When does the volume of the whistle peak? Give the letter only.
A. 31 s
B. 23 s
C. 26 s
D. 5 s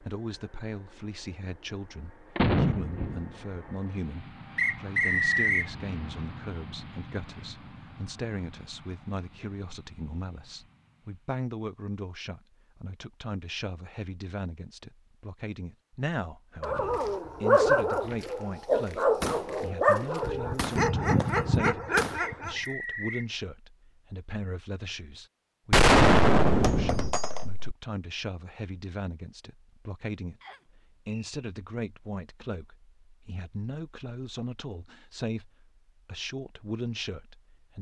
D.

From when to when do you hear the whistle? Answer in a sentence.
You can hear the whistle from 4.5 to 5.7 s, from 22.1 to 23.3 s and from 30.4 to 31.4 s.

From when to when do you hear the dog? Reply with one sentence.
You can hear the dog from 16.6 to 22.6 s.